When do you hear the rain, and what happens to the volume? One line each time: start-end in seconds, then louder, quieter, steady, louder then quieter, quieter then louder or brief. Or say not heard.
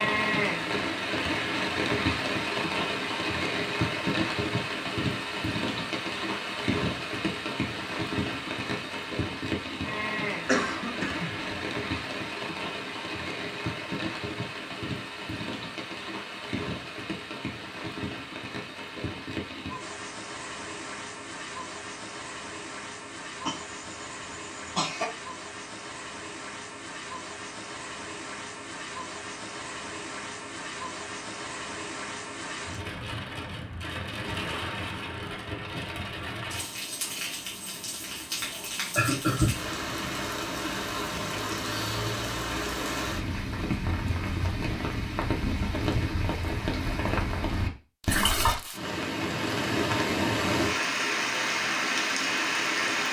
0.0-53.0 quieter then louder.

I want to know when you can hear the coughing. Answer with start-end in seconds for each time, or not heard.
10.4-11.6, 23.4-25.1, 39.0-39.7.